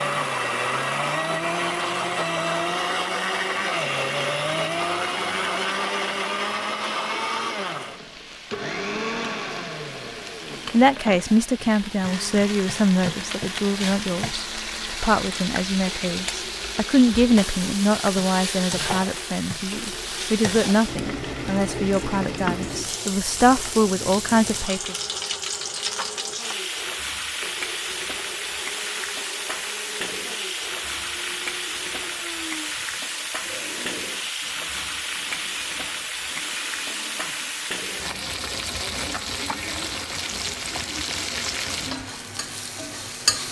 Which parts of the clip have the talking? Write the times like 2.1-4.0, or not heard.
10.7-24.9.